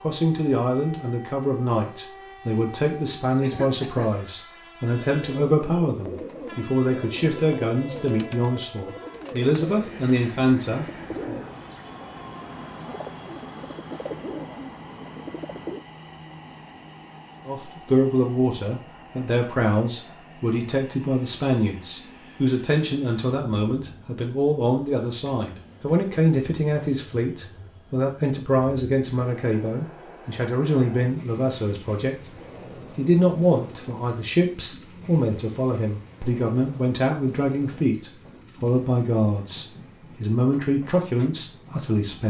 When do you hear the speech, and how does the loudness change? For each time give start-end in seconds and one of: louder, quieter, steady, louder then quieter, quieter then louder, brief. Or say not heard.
0.0-11.4 steady
17.4-42.2 steady.